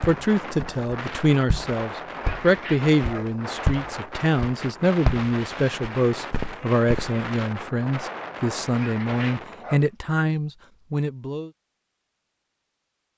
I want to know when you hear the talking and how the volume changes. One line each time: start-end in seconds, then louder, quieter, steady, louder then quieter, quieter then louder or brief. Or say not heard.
0.0-11.5 steady.